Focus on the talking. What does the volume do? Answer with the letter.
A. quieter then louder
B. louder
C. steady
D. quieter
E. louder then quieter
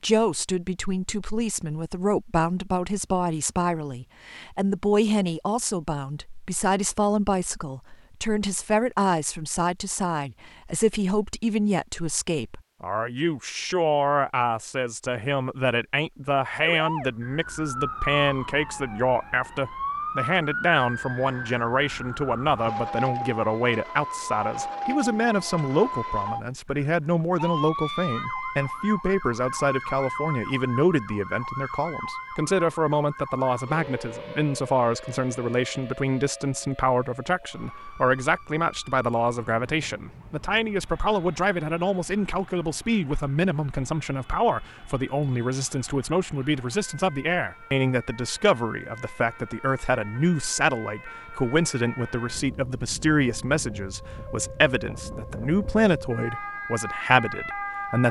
C.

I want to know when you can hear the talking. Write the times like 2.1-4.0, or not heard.
0.0-58.0.